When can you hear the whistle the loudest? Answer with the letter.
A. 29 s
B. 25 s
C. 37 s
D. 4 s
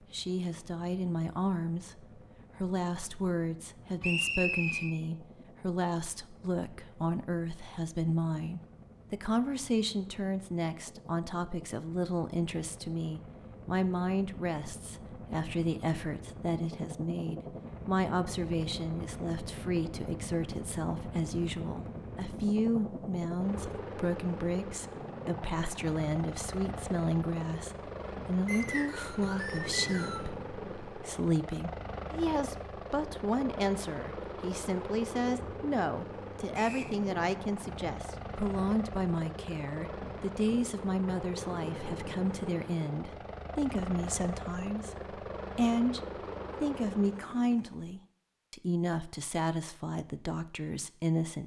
D.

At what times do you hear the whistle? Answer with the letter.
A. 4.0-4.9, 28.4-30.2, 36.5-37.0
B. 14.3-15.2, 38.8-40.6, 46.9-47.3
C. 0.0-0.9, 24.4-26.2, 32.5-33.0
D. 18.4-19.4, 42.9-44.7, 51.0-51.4
A.